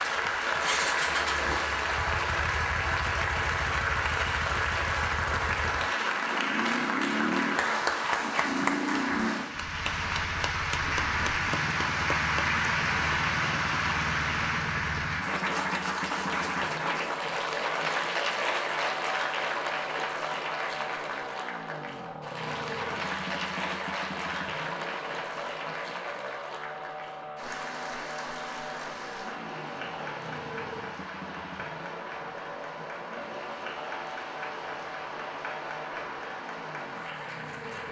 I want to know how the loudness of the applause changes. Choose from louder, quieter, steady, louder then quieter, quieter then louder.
quieter.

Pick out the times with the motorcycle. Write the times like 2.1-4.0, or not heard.
0.0-37.8.